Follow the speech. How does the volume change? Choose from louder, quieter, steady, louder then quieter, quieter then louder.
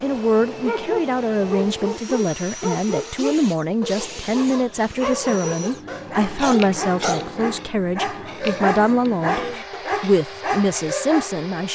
steady.